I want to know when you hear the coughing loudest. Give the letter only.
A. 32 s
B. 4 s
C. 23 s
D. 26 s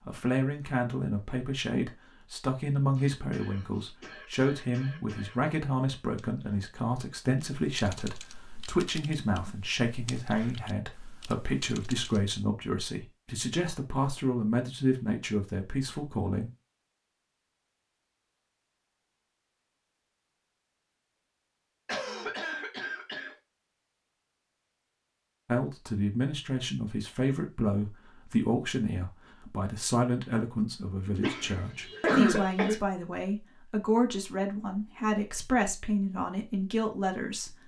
A.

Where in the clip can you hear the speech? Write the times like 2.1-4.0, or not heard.
0.1-16.5, 25.4-37.5.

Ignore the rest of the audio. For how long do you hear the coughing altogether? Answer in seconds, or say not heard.
6 s.